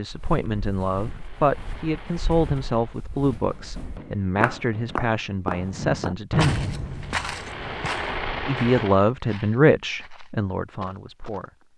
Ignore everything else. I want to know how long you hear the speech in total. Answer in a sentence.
You can hear the speech for 10 seconds altogether.